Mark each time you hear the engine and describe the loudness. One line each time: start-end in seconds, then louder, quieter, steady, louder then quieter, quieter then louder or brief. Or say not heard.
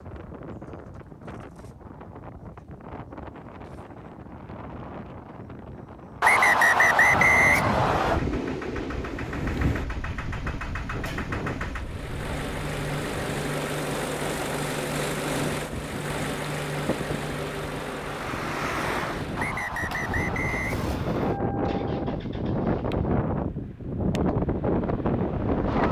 8.1-25.8 louder then quieter.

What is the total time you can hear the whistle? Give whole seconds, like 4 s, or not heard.
4 s.